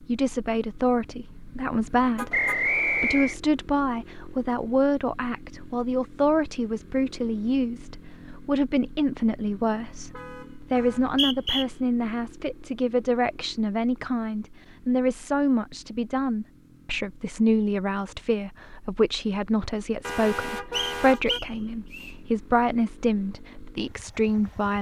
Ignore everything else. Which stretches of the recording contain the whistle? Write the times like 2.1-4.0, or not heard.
2.3-3.4, 10.8-11.7, 20.7-22.1.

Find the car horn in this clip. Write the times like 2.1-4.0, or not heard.
2.1-2.6, 9.9-11.0, 20.0-21.4.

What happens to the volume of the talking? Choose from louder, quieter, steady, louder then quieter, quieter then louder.
steady.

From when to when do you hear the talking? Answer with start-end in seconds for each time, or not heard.
0.1-24.7.